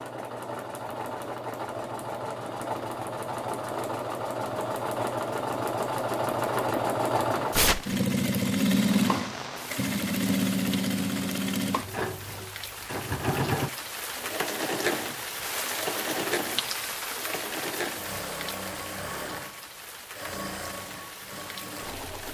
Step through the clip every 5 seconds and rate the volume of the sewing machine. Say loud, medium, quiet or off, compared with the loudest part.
medium, loud, loud, medium, quiet.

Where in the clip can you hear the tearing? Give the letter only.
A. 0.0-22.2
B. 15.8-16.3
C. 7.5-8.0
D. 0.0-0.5
C.